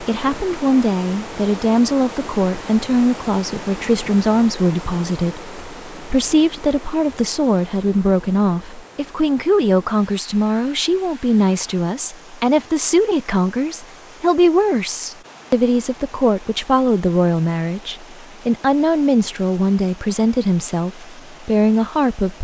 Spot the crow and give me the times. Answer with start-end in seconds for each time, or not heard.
not heard.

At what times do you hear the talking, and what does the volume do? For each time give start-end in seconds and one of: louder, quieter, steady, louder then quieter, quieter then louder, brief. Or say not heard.
0.0-22.3 steady.